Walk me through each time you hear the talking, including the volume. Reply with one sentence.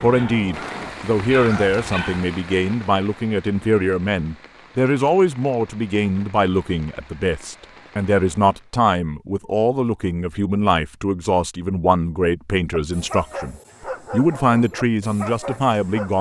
The talking can be heard from 0.0 to 16.1 s, at a steady volume.